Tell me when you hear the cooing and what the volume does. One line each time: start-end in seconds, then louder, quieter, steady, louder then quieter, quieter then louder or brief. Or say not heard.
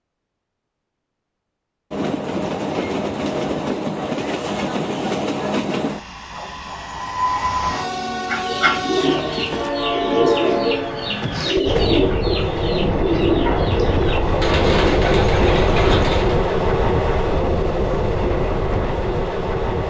8.2-16.4 steady.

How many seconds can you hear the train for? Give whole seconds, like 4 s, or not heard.
18 s.